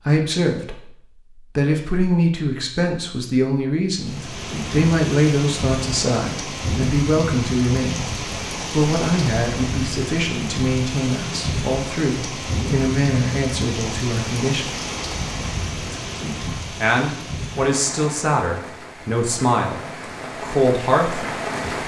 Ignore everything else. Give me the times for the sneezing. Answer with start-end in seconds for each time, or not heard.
not heard.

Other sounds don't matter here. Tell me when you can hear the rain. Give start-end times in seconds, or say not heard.
4.0-21.8.